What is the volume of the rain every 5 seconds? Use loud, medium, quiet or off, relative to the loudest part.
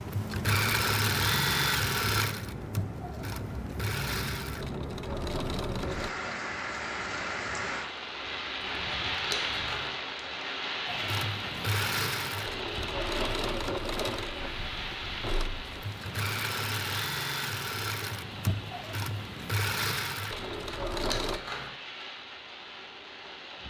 medium, loud, loud, medium, medium.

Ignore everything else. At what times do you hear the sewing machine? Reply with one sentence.
You can hear the sewing machine from 0.0 to 6.1 s and from 10.8 to 21.4 s.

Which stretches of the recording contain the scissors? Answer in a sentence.
The scissors can be heard from 8.6 to 9.9 s and from 20.4 to 21.7 s.